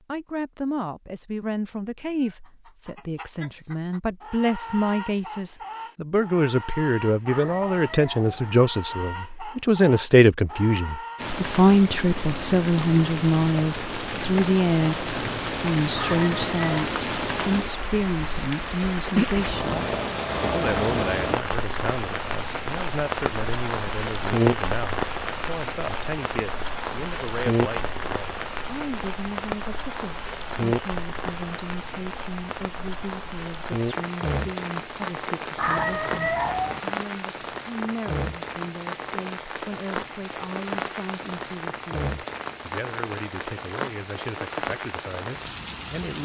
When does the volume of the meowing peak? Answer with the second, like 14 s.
36 s.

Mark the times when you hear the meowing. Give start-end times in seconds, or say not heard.
7.2-8.5, 15.9-16.9, 35.5-36.8.